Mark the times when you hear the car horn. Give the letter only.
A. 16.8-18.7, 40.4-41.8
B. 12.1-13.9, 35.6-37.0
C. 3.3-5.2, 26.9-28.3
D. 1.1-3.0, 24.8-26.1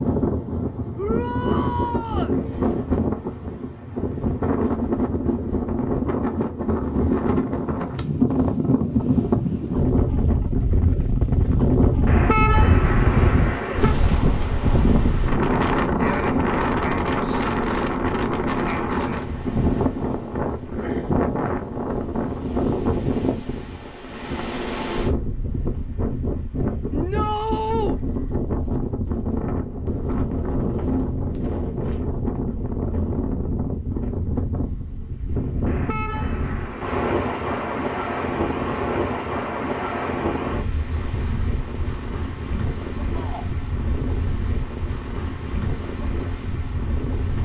B.